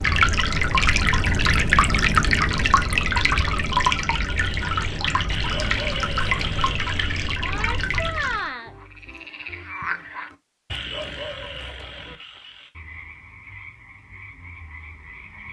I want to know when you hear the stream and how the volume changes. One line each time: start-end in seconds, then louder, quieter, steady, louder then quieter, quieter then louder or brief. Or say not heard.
0.0-8.5 quieter.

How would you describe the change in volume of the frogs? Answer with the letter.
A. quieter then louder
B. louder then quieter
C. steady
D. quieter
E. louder
D.